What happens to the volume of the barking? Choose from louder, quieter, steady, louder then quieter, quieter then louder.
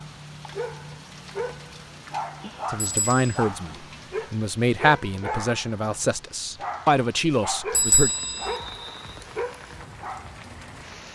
steady.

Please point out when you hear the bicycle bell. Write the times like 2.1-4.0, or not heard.
2.8-3.2, 7.7-8.6.